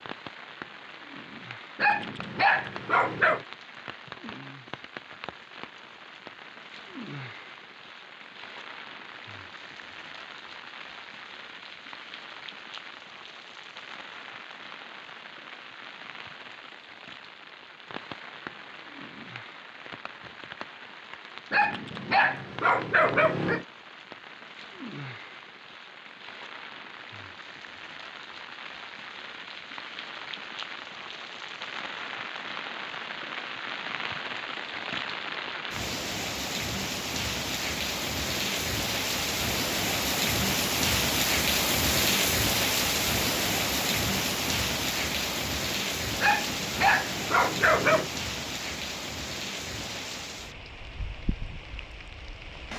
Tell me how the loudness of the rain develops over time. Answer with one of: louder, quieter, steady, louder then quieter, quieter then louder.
louder.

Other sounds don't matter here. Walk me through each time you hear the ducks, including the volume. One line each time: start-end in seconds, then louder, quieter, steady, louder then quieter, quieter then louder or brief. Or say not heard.
not heard.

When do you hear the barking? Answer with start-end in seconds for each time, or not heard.
1.8-3.5, 21.5-23.6, 46.2-48.1.